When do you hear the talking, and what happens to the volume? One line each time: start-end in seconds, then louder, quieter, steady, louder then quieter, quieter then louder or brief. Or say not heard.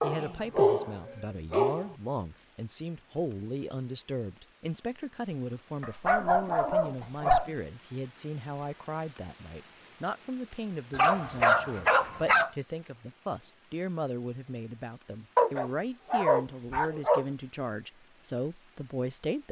0.0-19.4 steady.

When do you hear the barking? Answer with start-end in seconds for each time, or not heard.
0.0-1.9, 5.8-7.5, 10.9-12.5, 15.3-17.2.